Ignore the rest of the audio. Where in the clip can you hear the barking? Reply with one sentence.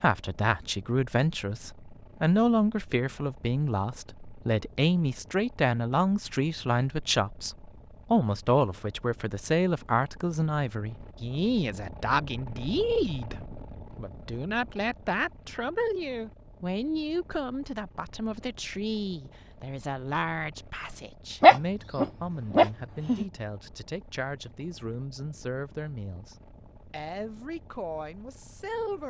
You can hear the barking from 21.4 to 23.2 s.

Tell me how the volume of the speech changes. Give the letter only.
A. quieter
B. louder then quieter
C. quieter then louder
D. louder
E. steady
A.